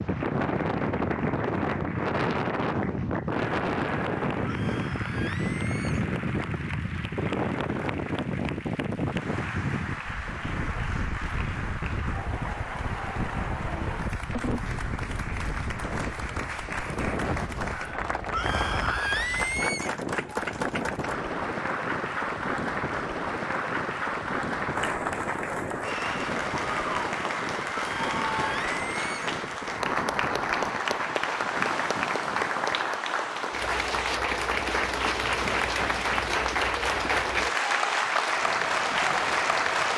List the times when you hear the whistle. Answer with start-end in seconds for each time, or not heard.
not heard.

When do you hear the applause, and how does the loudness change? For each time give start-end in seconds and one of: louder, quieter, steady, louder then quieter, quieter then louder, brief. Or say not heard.
0.0-39.9 louder.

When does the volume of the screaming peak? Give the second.
19 s.